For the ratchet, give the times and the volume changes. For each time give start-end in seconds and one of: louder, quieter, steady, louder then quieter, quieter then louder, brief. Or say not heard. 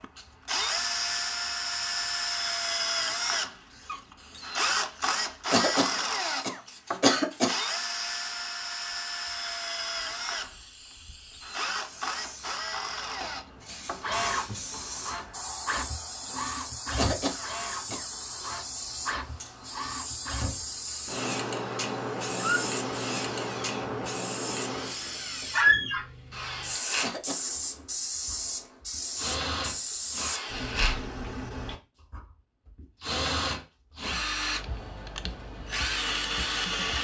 not heard.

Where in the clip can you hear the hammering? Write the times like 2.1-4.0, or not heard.
not heard.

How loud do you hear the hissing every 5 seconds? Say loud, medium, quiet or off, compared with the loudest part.
quiet, quiet, medium, medium, loud, loud, loud, off.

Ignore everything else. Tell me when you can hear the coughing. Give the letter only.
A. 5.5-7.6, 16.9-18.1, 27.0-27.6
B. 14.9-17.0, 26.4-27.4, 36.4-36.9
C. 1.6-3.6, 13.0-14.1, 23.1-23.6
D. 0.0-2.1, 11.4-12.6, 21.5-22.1
A.